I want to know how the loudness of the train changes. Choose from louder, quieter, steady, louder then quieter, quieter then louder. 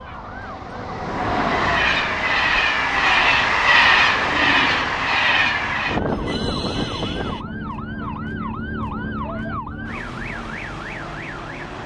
louder then quieter.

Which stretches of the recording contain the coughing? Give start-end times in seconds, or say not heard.
not heard.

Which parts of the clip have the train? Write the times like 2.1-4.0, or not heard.
0.0-7.5.